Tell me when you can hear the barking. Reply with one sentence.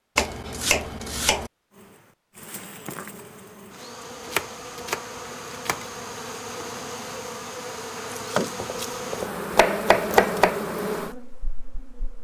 You can't hear the barking here.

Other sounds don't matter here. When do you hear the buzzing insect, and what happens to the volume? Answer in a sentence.
The buzzing insect can be heard from 1.7 to 12.2 s, getting louder.